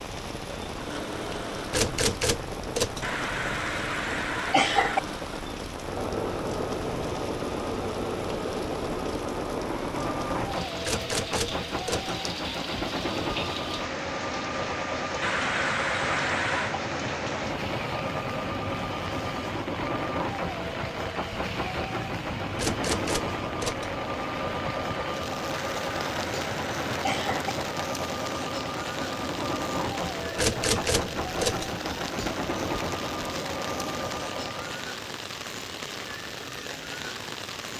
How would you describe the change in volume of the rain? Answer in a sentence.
The loudness of the rain stays about the same.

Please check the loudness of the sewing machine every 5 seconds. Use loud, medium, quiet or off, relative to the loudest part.
medium, loud, loud, loud, loud, loud, loud, off.